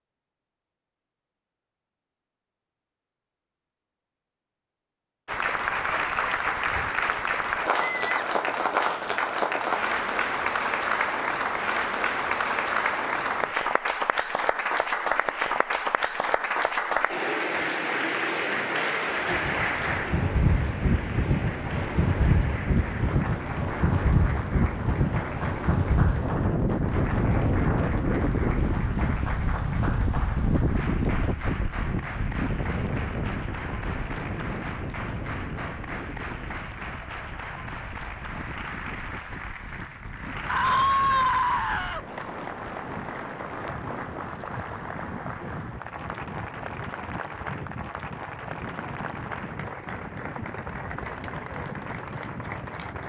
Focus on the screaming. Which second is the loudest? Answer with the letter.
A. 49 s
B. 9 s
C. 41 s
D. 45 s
C.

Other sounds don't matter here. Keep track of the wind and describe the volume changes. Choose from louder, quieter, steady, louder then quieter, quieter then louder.
quieter.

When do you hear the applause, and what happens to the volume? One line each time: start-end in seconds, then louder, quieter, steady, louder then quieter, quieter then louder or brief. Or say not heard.
5.2-53.0 quieter.